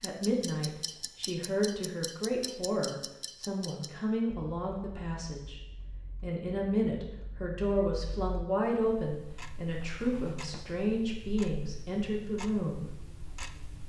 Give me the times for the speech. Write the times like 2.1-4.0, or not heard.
0.0-5.6, 6.2-12.8.